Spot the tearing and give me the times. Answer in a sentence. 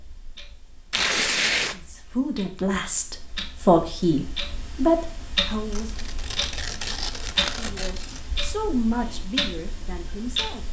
You can hear the tearing from 0.9 to 1.8 s and from 5.7 to 8.2 s.